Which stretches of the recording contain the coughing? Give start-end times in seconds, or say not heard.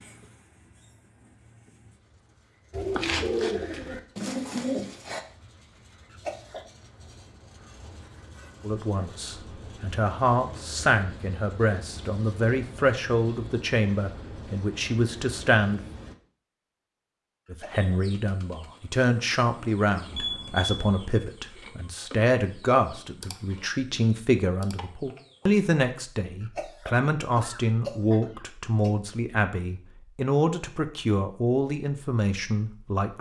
6.1-6.7, 17.4-18.0, 26.4-28.9.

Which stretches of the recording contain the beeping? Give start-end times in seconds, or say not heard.
20.1-21.2.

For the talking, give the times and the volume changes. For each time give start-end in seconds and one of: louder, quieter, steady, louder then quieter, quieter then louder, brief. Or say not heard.
8.6-15.8 steady
17.5-33.1 steady.